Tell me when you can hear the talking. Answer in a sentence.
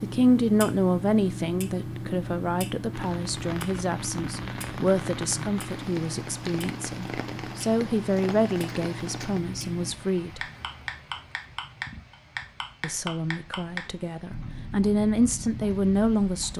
The talking can be heard from 0.0 to 10.4 s and from 12.8 to 16.5 s.